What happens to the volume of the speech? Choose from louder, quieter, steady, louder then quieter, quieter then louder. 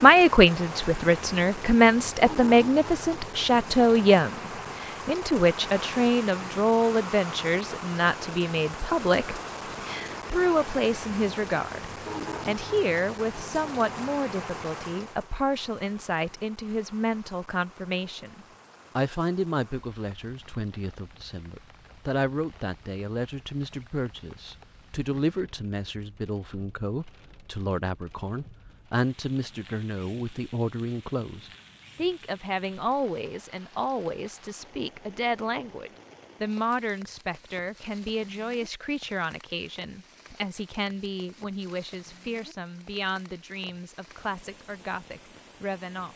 quieter.